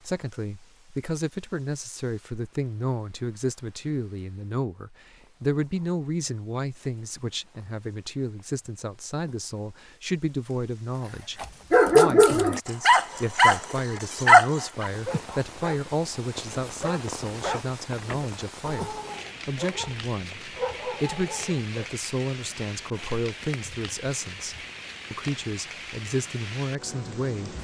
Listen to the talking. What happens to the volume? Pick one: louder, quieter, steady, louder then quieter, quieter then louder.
steady.